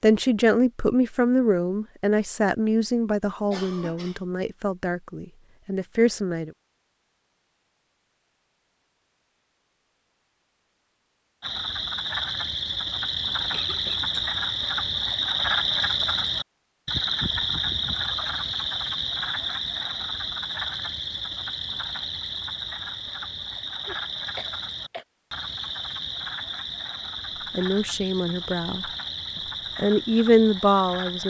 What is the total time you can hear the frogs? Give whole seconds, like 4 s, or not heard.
20 s.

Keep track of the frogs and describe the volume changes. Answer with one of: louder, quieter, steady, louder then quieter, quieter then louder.
quieter.